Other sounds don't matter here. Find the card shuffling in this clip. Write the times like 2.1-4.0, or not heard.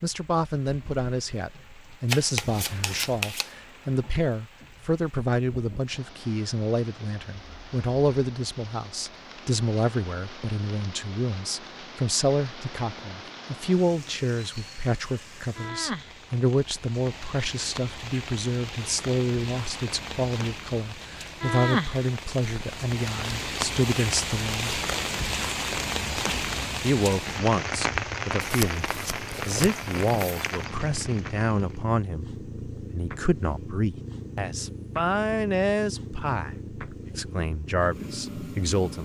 2.0-3.5, 28.4-29.8.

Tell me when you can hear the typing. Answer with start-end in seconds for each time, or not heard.
not heard.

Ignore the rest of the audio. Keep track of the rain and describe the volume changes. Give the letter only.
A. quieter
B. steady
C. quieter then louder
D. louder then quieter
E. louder
E.